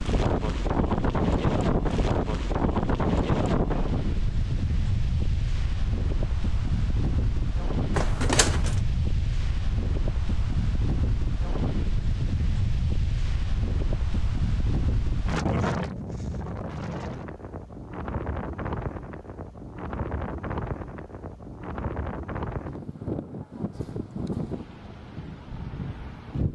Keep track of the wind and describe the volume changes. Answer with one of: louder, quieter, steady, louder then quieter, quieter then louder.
quieter.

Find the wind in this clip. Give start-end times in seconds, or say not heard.
0.0-26.4.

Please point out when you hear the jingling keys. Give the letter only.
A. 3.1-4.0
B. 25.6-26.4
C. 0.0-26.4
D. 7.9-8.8
D.